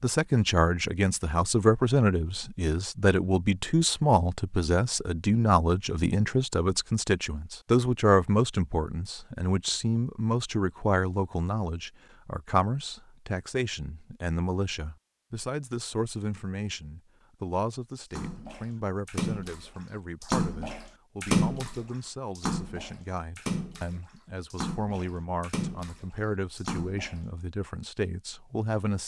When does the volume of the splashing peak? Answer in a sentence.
The volume of the splashing peaks at 21 seconds.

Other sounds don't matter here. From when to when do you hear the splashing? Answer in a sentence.
You can hear the splashing from 18.1 to 27.2 s.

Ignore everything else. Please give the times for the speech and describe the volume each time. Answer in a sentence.
The speech can be heard from 0.0 to 29.0 s, getting quieter.